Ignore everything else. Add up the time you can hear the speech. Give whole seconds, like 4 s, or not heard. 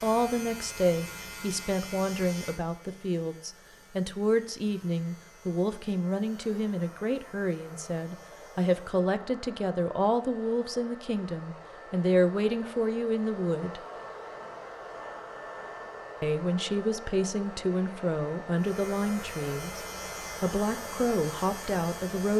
20 s.